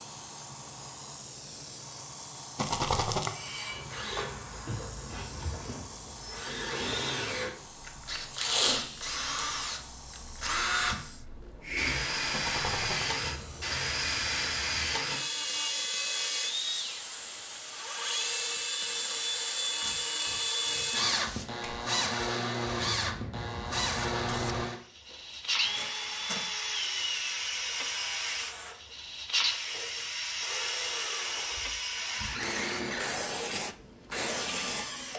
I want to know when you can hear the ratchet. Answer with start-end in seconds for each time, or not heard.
not heard.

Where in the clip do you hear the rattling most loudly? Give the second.
3 s.